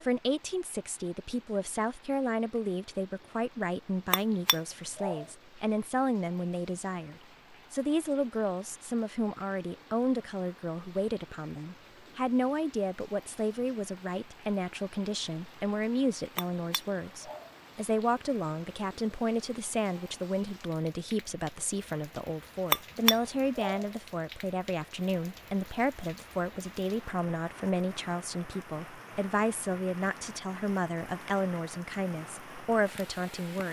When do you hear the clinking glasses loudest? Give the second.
23 s.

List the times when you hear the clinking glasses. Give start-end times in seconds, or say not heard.
4.1-5.2, 16.4-17.5, 22.7-23.9.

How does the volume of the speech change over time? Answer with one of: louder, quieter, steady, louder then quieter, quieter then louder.
steady.